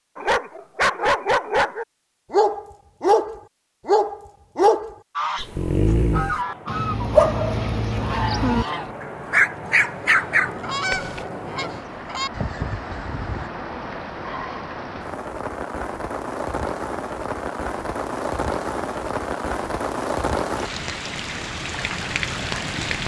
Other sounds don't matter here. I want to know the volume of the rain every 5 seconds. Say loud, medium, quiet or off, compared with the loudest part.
off, medium, medium, loud, loud.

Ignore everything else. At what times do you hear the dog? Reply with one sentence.
You can hear the dog from 0.1 to 11.2 s.